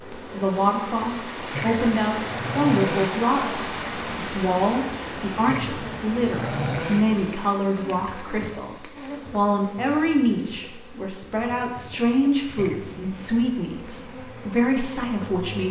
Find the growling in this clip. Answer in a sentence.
The growling can be heard from 1.5 to 3.1 s, from 5.5 to 7.0 s and from 12.6 to 13.6 s.